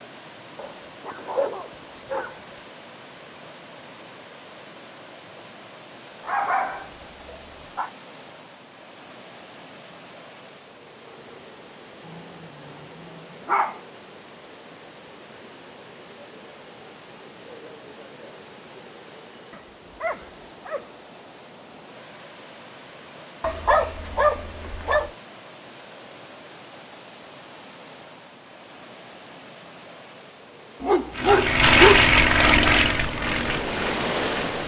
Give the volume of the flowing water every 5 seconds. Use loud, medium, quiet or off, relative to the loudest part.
quiet, quiet, quiet, quiet, quiet, quiet, loud.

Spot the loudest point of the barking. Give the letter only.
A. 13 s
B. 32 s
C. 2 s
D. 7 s
B.